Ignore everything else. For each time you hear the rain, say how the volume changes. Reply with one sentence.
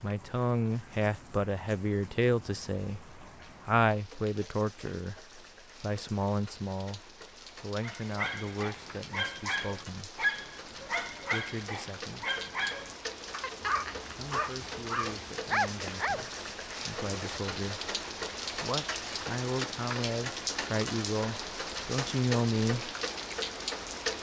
The rain can be heard from 0.0 to 24.1 s, getting louder.